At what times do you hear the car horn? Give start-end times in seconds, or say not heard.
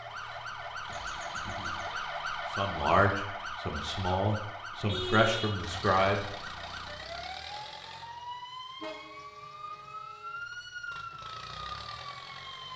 0.8-1.9, 4.5-5.5, 8.8-10.3.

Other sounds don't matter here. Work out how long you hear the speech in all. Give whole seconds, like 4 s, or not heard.
4 s.